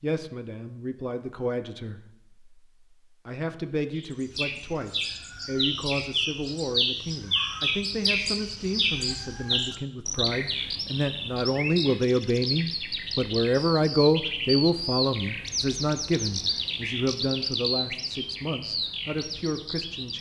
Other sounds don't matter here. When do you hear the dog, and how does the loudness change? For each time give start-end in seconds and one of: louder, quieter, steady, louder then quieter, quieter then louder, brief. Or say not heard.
not heard.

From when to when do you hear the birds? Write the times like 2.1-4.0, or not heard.
3.9-20.1.